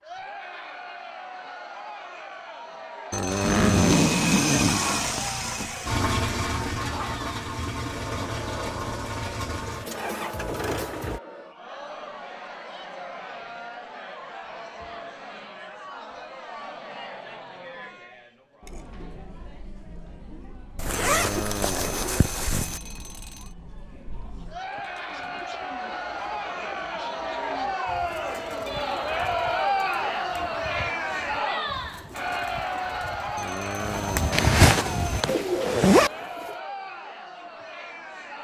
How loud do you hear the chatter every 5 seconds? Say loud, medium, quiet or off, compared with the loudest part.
medium, medium, medium, quiet, quiet, loud, loud, medium.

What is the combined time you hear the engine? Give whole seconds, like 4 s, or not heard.
8 s.